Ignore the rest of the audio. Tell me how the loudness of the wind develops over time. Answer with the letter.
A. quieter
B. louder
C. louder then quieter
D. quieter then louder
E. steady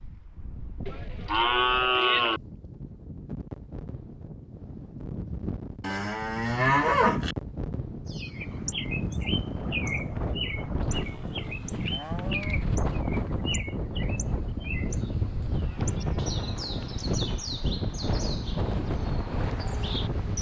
B.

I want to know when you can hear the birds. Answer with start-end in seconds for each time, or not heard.
8.1-20.3.